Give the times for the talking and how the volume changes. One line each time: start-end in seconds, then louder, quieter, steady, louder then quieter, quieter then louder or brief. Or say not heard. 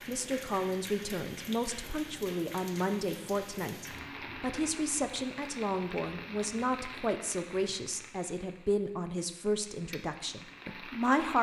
0.1-11.3 steady.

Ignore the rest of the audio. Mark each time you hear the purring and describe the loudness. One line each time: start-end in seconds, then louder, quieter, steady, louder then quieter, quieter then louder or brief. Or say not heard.
not heard.